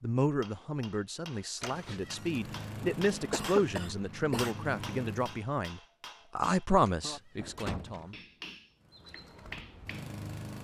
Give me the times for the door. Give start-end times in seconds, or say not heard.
1.6-2.4, 6.8-8.2.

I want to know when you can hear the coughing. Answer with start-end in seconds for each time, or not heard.
3.3-4.5.